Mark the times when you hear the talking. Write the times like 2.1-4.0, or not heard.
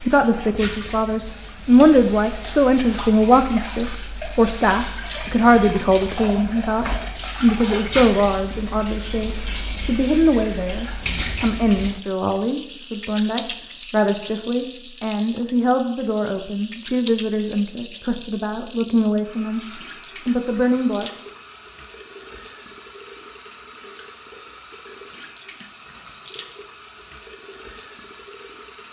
0.0-21.1.